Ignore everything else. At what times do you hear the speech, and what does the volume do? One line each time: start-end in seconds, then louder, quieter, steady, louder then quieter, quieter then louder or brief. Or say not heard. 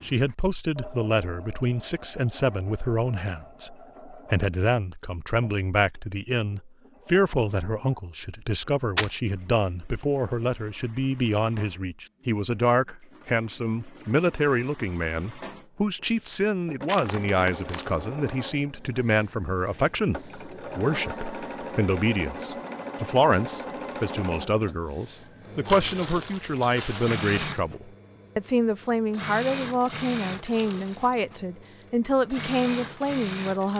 0.0-33.7 steady.